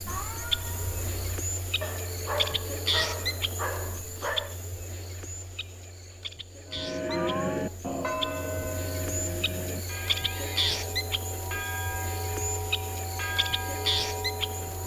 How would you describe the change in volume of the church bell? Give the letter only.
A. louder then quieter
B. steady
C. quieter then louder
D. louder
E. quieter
C.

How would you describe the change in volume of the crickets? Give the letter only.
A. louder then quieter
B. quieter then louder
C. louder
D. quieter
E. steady
B.